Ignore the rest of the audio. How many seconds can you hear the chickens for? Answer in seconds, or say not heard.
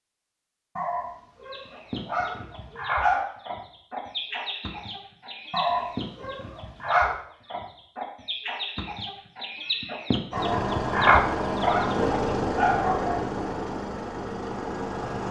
11 s.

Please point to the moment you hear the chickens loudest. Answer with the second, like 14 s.
11 s.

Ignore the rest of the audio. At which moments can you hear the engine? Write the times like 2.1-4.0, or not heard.
10.3-15.2.